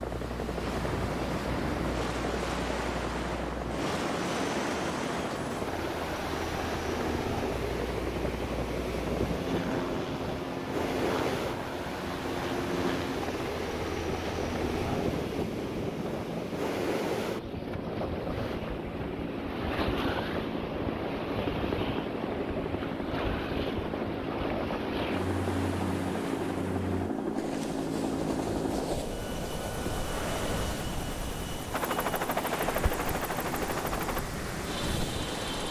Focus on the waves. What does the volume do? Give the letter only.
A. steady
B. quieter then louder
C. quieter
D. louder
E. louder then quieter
A.